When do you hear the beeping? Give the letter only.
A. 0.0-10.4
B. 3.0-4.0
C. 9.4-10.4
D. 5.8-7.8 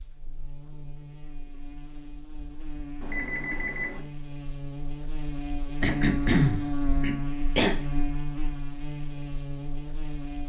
B.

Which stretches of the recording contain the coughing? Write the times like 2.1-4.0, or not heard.
5.8-7.8.